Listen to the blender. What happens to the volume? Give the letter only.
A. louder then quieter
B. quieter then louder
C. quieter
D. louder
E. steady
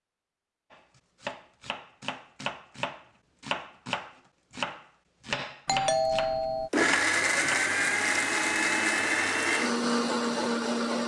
E.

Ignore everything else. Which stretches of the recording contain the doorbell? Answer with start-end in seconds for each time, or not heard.
5.7-6.7.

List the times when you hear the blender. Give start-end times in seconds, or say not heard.
6.7-11.0.